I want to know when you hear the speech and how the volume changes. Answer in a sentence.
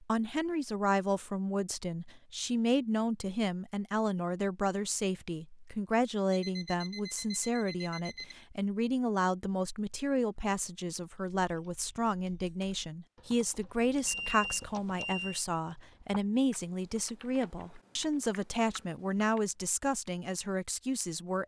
You can hear the speech from 0.0 to 21.4 s, at a steady volume.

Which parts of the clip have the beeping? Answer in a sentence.
The beeping can be heard from 6.3 to 8.3 s and from 14.1 to 15.4 s.